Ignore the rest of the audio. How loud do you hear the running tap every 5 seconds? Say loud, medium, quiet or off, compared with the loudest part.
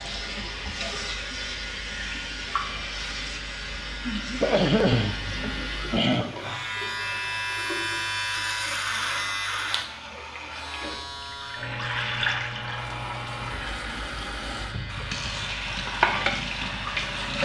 medium, quiet, medium, loud.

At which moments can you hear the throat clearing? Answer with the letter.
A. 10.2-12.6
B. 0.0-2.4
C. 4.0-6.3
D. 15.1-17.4
C.